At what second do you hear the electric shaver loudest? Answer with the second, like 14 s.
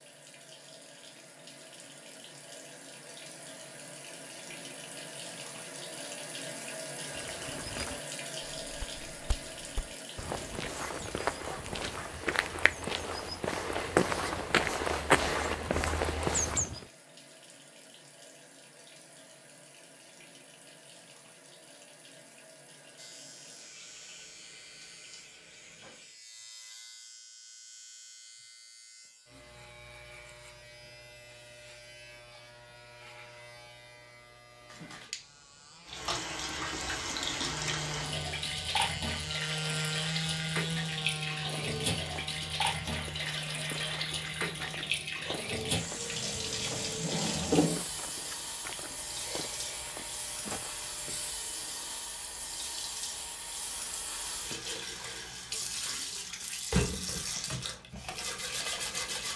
40 s.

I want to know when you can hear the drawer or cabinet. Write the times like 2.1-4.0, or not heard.
46.2-47.8.